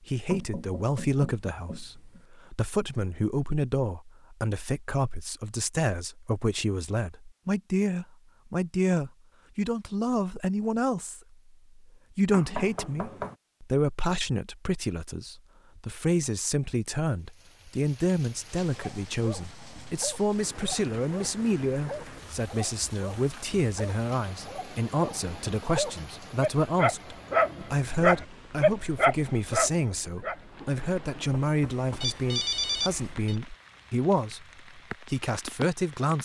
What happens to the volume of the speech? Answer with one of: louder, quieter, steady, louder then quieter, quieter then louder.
steady.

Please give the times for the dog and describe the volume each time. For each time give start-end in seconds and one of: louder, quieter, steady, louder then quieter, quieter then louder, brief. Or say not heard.
18.7-30.7 louder.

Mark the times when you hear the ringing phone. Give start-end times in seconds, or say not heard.
32.0-33.4.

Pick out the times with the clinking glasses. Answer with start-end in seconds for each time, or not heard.
not heard.